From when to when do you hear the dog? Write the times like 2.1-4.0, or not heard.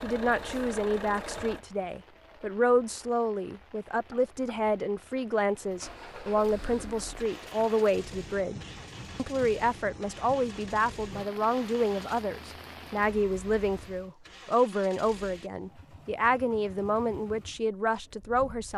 not heard.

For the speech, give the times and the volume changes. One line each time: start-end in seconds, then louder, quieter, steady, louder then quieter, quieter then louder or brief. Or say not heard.
0.0-18.7 steady.